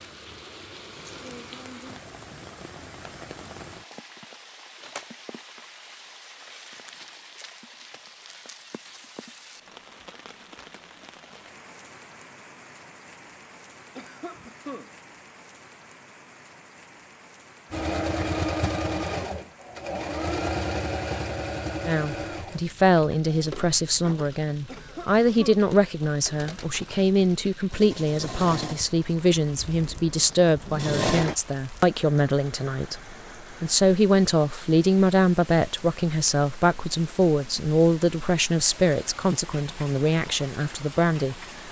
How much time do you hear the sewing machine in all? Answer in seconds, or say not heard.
14 s.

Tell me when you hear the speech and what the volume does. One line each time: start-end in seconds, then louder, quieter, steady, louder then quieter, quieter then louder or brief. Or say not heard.
21.9-41.4 steady.